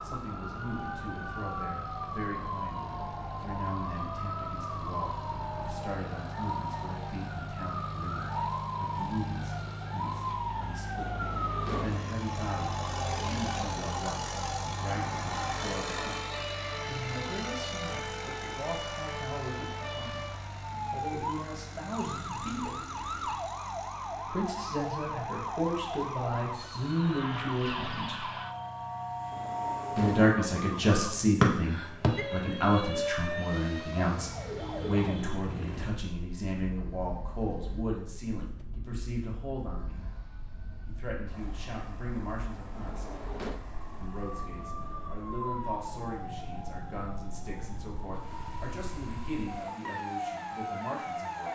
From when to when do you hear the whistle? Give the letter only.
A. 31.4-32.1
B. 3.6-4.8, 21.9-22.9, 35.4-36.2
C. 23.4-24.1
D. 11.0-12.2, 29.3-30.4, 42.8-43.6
A.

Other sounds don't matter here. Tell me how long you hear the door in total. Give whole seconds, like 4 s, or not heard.
3 s.